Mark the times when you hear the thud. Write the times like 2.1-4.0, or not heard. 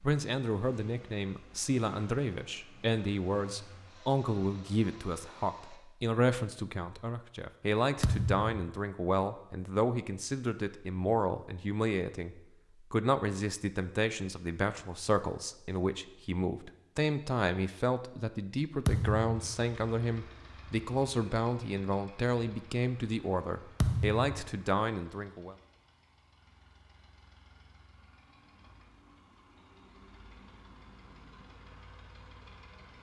8.0-8.7, 18.9-19.6, 23.8-24.5.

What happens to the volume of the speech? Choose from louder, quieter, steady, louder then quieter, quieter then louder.
steady.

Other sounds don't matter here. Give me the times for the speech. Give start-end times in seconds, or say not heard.
0.0-25.6.